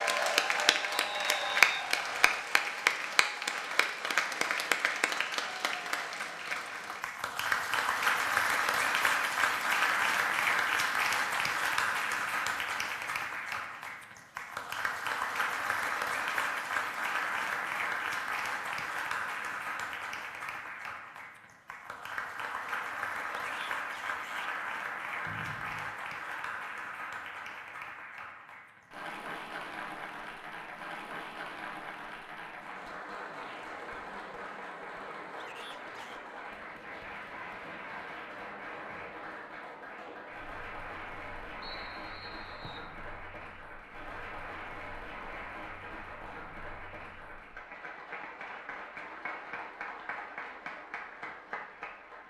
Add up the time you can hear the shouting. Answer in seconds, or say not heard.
2 s.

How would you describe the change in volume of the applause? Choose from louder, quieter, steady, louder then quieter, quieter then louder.
quieter.